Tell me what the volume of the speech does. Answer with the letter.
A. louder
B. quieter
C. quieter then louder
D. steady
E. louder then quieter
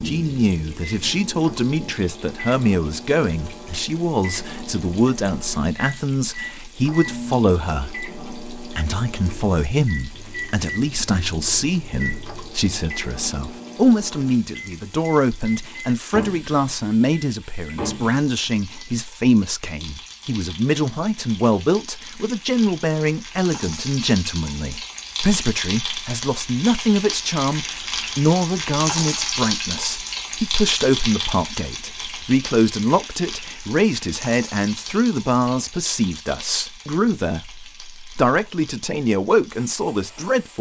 D.